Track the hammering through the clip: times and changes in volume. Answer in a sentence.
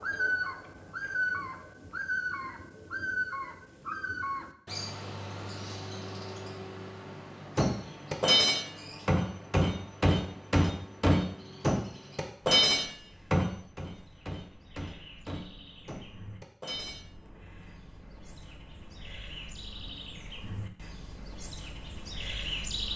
The hammering can be heard from 7.5 to 17.1 s, getting quieter.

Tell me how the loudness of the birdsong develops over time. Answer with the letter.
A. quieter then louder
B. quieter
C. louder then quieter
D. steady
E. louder
A.